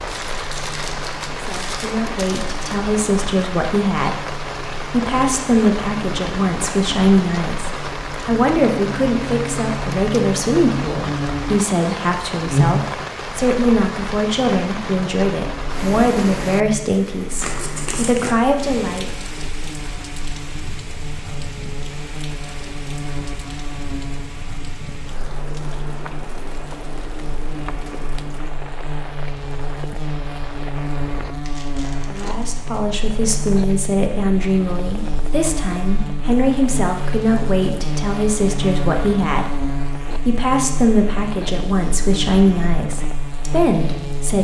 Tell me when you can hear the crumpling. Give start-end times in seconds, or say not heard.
0.1-2.8, 17.4-18.4, 31.4-32.5.